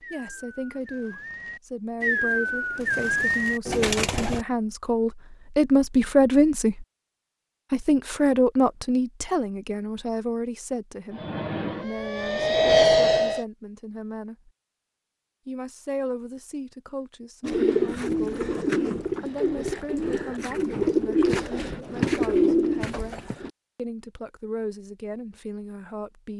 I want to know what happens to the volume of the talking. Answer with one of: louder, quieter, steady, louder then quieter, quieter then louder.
louder then quieter.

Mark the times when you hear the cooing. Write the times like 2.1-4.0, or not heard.
0.0-4.5, 17.4-23.5.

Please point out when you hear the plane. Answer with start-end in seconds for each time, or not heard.
11.1-13.4.